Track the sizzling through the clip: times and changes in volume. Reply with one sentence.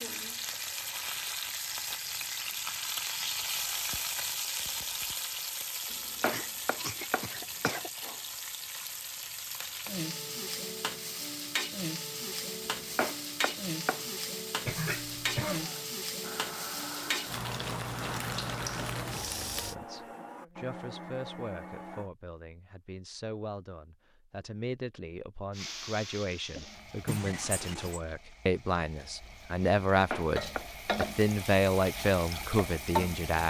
You can hear the sizzling from 0.0 to 19.8 s, at a steady volume; and from 25.5 to 33.4 s, getting quieter then louder.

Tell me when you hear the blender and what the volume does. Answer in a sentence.
The blender can be heard from 15.4 to 22.1 s, at a steady volume.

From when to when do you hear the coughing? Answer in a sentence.
You can hear the coughing from 6.2 to 7.9 s, from 14.7 to 15.7 s and from 27.1 to 28.0 s.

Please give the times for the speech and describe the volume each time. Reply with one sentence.
You can hear the speech from 19.6 to 33.4 s, getting louder.